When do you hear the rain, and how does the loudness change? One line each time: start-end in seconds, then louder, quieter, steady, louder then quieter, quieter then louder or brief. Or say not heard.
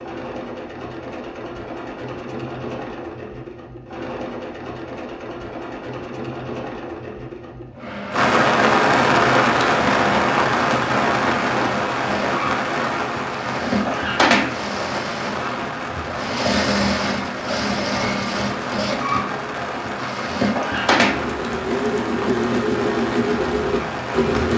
8.1-24.5 quieter.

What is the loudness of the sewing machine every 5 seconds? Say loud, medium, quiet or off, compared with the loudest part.
medium, medium, loud, loud, loud.